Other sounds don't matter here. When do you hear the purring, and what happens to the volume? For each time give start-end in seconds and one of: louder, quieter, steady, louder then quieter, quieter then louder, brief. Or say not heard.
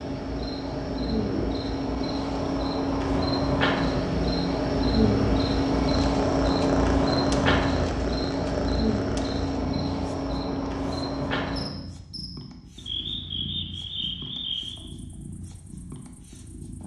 0.1-16.8 louder then quieter.